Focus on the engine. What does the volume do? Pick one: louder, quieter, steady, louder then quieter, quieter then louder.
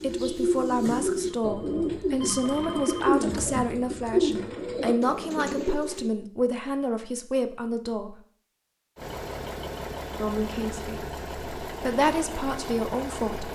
steady.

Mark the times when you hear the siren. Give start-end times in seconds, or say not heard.
not heard.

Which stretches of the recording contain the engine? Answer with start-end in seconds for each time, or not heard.
8.9-13.4.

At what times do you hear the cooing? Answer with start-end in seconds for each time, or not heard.
0.0-6.1.